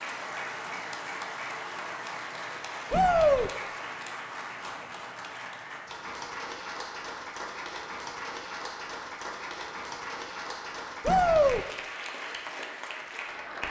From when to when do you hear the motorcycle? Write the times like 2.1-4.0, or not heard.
not heard.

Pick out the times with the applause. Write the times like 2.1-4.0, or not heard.
0.0-13.6.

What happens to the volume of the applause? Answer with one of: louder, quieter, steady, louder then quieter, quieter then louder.
steady.